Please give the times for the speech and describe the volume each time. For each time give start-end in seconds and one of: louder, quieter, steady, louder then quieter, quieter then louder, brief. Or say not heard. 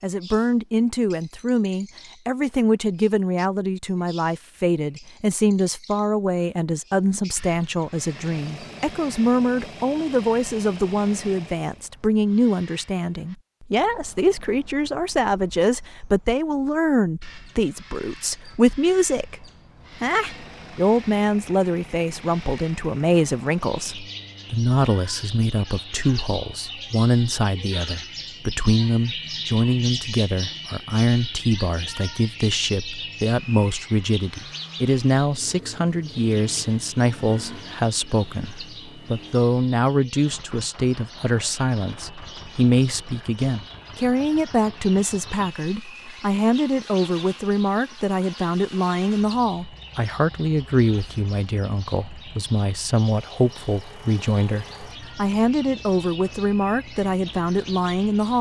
0.0-19.4 steady
20.0-58.3 steady.